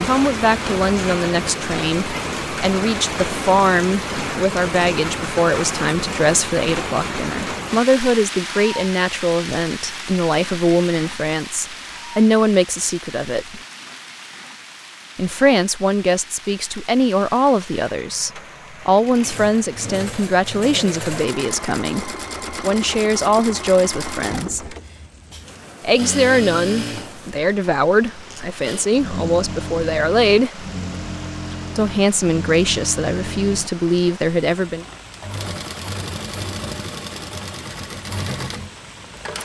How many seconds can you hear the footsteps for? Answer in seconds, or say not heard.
not heard.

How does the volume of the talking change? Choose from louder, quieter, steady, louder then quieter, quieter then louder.
steady.